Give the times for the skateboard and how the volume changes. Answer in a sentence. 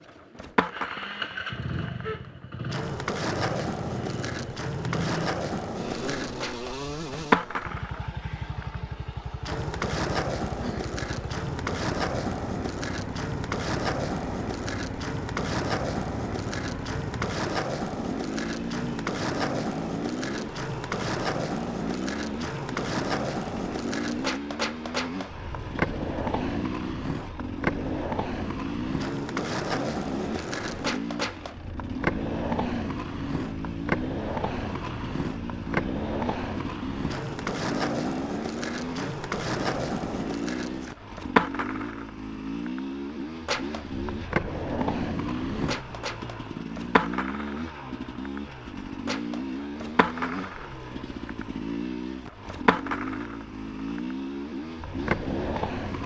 The skateboard can be heard from 0.1 to 56.0 s, at a steady volume.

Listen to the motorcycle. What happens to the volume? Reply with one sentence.
The volume of the motorcycle stays about the same.